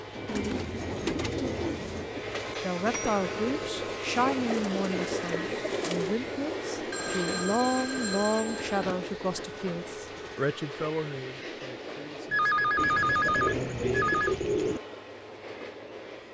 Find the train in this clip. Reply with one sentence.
You can hear the train from 0.0 to 16.3 s.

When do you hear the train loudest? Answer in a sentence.
The loudest moment of the train is at 5 seconds.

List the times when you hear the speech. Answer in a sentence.
The speech can be heard from 2.6 to 14.1 s.